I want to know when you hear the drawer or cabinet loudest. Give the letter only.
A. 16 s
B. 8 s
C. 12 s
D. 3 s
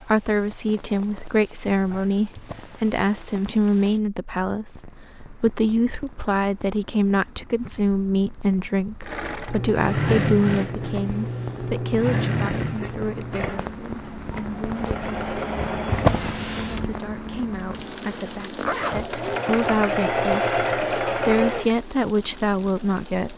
A.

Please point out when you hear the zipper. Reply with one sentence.
You can hear the zipper from 18.6 to 19.1 s.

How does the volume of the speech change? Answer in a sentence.
The loudness of the speech goes down, then up.